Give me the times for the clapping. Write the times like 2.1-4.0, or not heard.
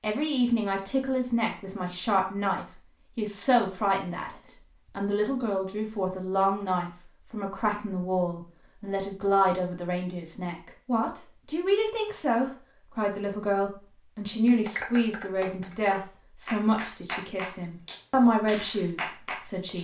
14.4-19.7.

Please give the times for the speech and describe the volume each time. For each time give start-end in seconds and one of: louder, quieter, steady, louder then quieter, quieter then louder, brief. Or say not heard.
0.0-19.7 steady.